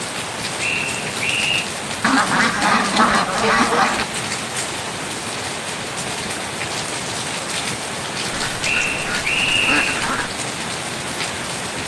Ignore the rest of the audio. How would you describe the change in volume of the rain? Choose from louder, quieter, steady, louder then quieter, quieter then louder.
steady.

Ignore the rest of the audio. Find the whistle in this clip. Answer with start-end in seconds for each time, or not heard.
0.6-1.7, 8.6-10.0.